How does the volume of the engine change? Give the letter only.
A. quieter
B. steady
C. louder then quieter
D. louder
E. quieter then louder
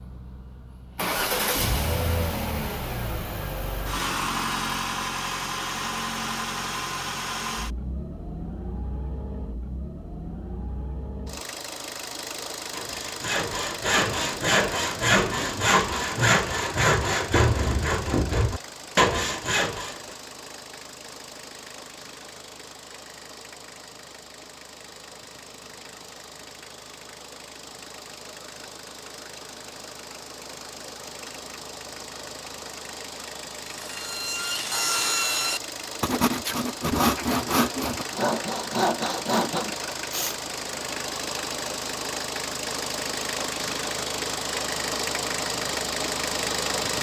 E.